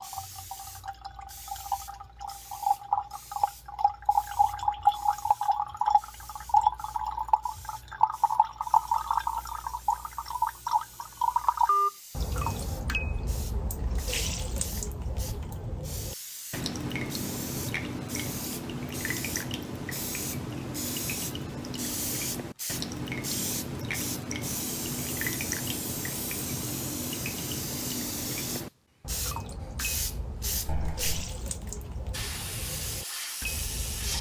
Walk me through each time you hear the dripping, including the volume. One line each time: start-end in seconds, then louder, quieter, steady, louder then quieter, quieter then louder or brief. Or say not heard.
0.0-34.1 quieter.